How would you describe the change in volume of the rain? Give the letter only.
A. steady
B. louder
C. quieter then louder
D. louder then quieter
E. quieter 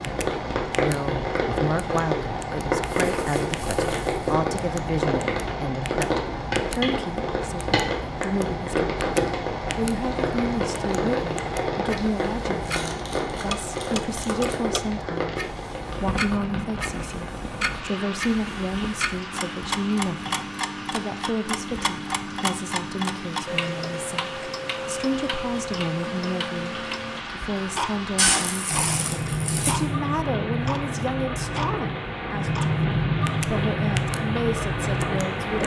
C.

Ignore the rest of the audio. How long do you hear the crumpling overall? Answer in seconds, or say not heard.
5 s.